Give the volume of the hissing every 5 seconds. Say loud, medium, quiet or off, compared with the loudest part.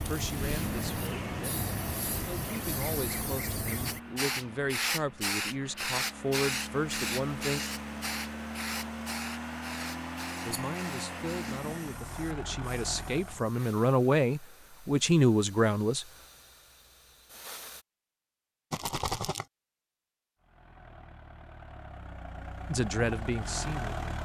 loud, loud, quiet, quiet, off.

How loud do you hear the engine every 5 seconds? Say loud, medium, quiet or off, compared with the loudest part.
loud, loud, loud, off, loud.